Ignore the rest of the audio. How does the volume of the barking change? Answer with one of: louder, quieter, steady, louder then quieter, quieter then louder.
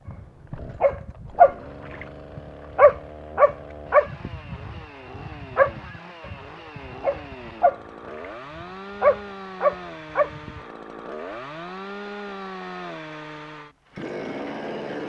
quieter then louder.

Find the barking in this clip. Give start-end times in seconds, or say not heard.
0.1-10.6.